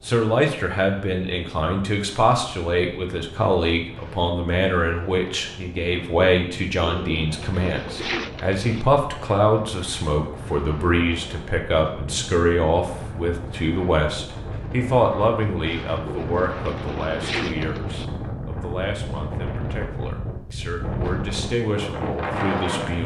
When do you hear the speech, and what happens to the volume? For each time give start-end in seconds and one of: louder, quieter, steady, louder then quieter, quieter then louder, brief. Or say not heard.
0.1-23.0 quieter.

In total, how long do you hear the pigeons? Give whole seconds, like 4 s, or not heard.
4 s.